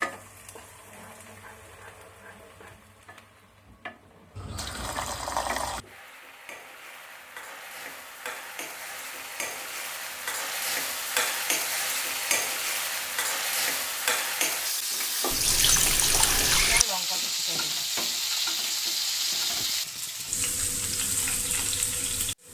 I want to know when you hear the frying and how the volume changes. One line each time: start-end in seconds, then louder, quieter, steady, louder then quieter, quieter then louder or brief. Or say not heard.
0.0-22.4 louder.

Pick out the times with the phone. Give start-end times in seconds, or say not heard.
not heard.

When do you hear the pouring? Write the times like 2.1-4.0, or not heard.
4.3-5.8, 15.3-16.9.